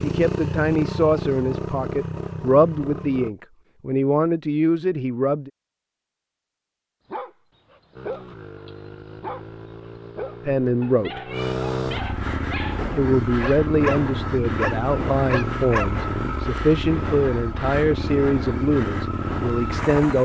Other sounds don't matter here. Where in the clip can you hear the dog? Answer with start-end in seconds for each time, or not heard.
7.1-16.1.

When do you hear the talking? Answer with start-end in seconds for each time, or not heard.
0.0-5.5, 10.4-11.2, 12.9-20.1.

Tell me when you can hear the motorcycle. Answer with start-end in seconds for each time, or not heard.
0.0-3.3, 8.0-20.1.